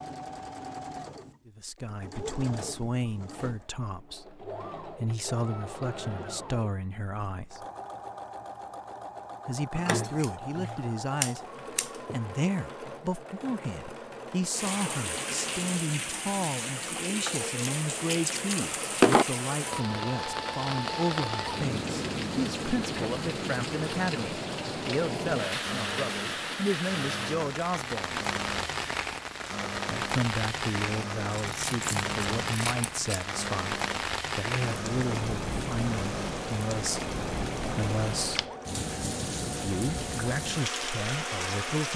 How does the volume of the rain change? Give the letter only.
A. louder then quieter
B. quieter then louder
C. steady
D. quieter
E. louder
C.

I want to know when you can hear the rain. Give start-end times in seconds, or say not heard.
14.5-41.9.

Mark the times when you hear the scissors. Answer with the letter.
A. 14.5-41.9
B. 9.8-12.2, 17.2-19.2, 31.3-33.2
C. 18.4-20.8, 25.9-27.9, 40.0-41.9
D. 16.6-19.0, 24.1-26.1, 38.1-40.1
B.